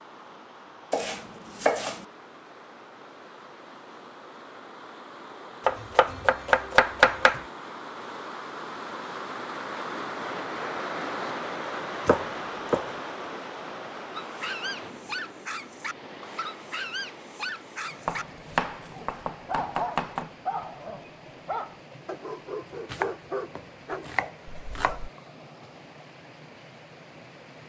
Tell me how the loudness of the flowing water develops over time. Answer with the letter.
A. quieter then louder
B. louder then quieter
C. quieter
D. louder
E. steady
B.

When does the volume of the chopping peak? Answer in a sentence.
The loudest moment of the chopping is at 7 seconds.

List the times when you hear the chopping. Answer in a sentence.
The chopping can be heard from 0.9 to 2.0 s, from 5.7 to 7.5 s, from 12.1 to 12.8 s, from 18.1 to 20.2 s and from 22.9 to 25.0 s.